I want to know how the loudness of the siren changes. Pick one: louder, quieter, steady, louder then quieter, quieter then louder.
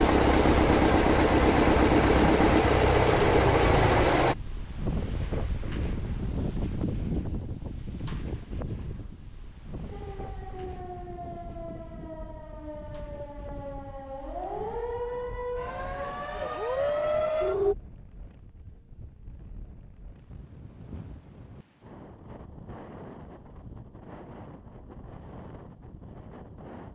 louder.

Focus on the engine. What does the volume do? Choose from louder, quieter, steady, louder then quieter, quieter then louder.
steady.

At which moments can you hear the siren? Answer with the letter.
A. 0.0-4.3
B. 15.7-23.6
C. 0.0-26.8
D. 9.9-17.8
D.